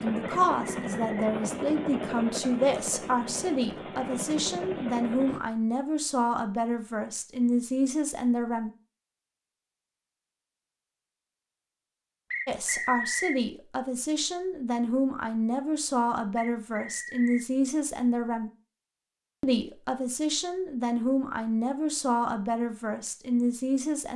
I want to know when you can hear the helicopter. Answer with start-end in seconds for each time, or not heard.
0.0-5.4.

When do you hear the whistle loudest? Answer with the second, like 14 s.
13 s.